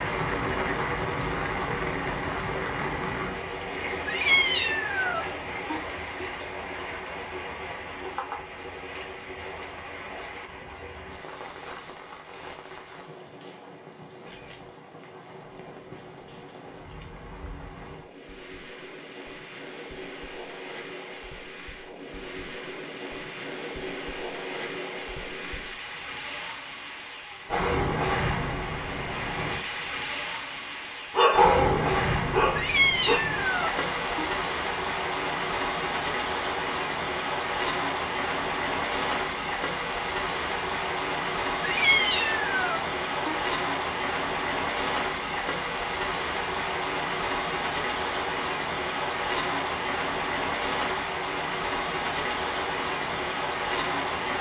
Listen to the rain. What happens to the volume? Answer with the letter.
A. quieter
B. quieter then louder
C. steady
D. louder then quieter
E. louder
B.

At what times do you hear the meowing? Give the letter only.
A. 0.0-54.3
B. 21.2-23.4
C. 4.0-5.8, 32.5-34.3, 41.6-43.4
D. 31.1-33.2
C.